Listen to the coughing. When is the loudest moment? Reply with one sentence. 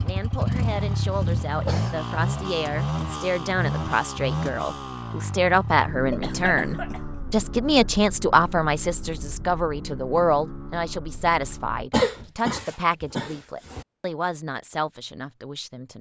The volume of the coughing peaks at 12 seconds.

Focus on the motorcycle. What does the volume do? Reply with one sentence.
The loudness of the motorcycle goes down.